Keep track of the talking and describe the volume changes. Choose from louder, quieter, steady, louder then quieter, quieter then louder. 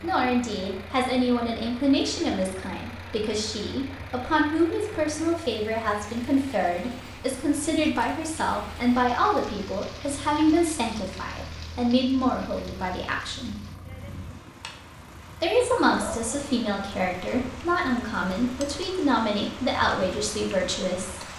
steady.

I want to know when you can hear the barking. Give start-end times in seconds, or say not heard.
15.9-16.5.